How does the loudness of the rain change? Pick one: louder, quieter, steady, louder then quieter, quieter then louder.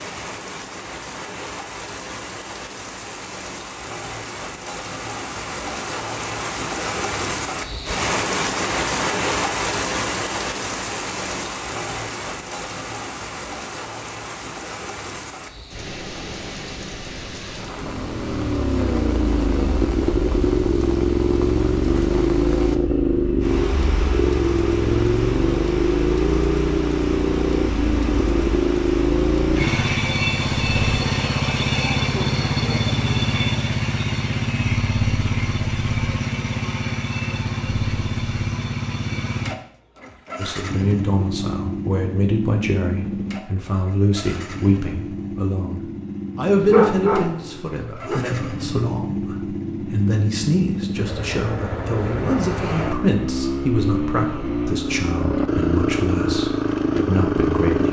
louder then quieter.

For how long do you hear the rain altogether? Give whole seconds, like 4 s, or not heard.
30 s.